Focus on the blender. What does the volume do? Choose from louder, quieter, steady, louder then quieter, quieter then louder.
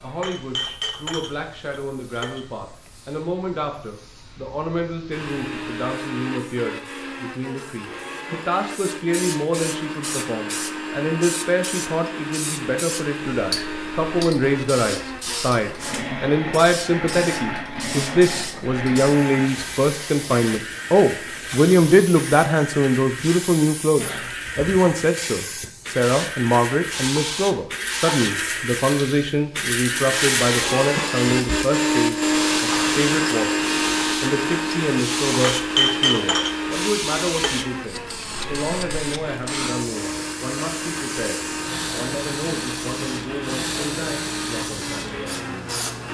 louder then quieter.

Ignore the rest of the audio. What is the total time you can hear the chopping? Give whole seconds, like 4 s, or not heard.
not heard.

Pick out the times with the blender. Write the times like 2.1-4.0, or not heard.
5.1-46.0.